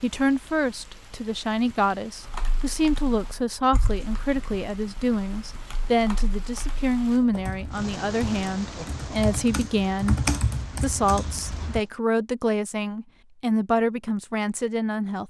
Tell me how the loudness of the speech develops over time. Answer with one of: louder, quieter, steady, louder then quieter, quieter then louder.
steady.